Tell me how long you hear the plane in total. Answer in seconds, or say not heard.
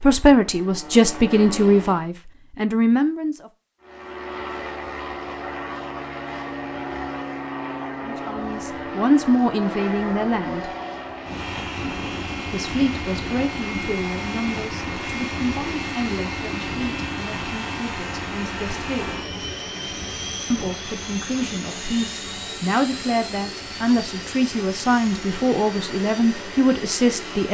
26 s.